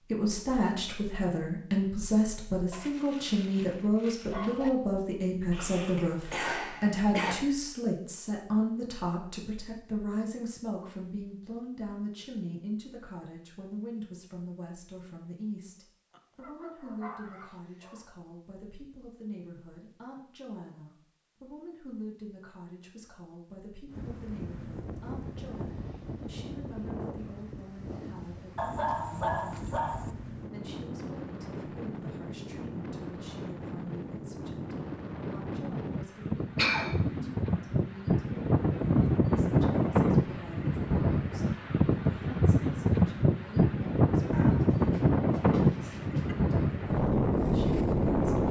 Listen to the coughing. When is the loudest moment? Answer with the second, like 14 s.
37 s.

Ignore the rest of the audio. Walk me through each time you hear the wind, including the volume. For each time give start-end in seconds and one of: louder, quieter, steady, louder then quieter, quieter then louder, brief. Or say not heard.
23.9-48.4 louder.